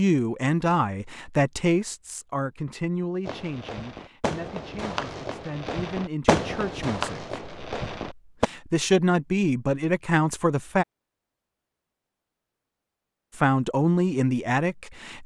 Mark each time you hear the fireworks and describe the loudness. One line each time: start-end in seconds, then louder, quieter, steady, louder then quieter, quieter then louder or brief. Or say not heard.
3.2-8.5 louder then quieter.